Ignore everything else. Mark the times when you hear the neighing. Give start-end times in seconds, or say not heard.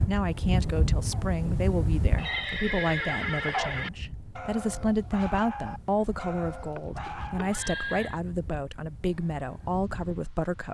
2.1-3.9, 6.5-8.2.